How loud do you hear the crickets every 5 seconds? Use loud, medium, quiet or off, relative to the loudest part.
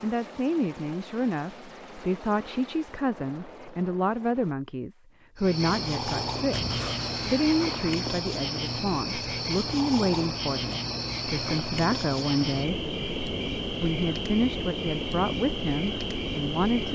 off, loud, loud, loud.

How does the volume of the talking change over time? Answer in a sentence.
The volume of the talking stays about the same.